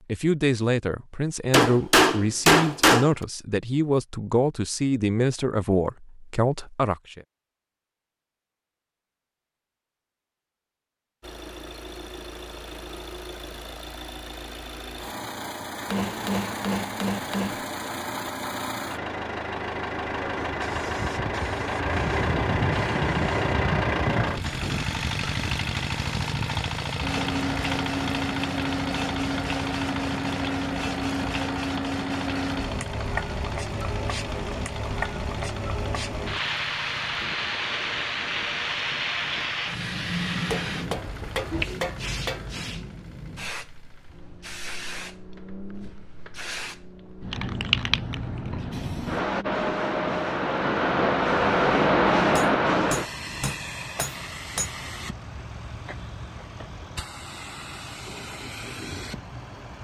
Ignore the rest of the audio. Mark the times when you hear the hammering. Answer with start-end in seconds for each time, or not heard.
1.5-3.1, 15.8-17.6, 40.5-42.5, 52.3-54.7.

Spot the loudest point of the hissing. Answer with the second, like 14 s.
52 s.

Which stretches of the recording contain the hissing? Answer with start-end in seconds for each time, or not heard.
20.4-59.8.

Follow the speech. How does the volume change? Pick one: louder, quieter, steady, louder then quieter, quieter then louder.
steady.